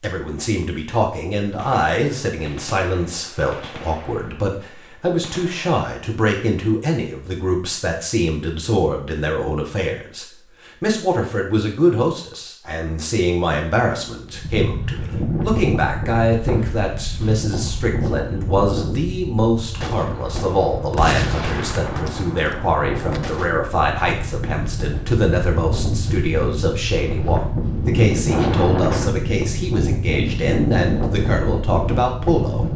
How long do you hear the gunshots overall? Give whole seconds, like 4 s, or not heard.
8 s.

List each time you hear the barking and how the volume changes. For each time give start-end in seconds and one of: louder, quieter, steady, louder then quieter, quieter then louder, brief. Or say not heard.
not heard.